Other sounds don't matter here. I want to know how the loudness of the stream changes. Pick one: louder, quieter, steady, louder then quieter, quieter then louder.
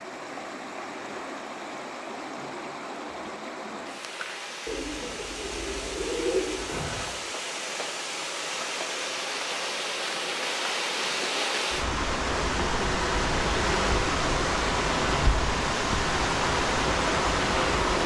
louder.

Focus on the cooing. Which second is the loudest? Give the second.
6 s.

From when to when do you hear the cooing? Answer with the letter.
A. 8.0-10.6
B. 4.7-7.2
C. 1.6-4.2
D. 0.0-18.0
B.